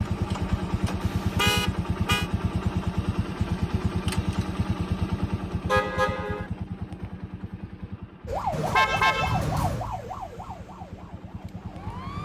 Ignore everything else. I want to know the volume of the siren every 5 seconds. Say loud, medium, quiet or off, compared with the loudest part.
off, loud, medium.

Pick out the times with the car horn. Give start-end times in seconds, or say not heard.
1.0-2.3, 5.7-6.5, 8.5-9.8.